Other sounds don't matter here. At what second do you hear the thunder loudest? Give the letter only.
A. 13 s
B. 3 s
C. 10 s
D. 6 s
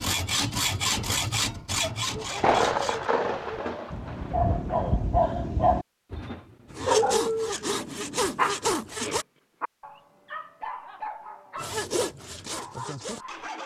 B.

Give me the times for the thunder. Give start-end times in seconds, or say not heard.
2.4-4.9.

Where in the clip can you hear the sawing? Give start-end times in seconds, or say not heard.
0.0-3.1, 6.7-9.2, 11.6-13.6.